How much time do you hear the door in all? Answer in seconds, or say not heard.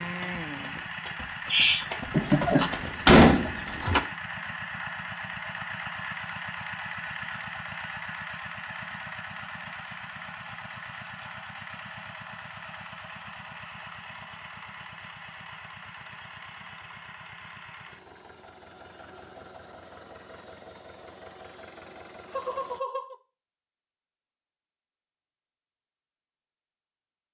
2 s.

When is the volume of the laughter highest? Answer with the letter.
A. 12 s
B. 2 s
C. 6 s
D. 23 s
B.